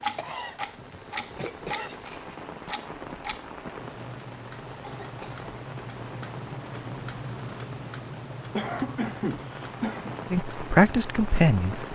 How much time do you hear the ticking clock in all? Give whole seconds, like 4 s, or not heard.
12 s.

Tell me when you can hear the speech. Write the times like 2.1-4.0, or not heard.
10.3-11.8.